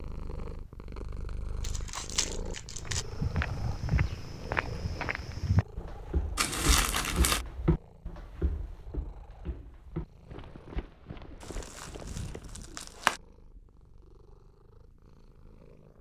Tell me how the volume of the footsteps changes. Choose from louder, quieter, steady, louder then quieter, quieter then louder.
quieter.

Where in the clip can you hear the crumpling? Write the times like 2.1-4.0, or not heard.
1.6-3.0, 6.3-7.5, 11.4-13.2.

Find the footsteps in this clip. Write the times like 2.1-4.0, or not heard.
2.9-12.8.